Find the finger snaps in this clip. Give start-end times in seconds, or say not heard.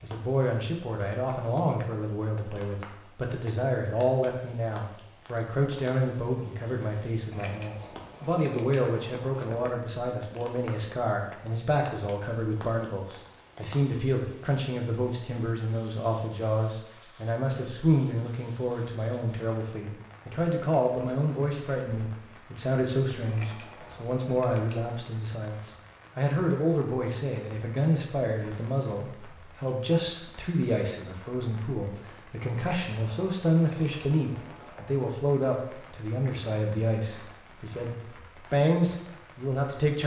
not heard.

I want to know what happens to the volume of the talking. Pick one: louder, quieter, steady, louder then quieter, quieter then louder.
steady.